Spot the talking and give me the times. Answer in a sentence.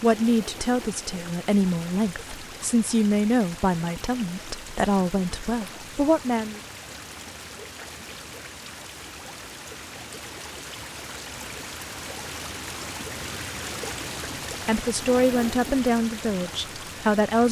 The talking can be heard from 0.0 to 6.6 s and from 14.7 to 17.4 s.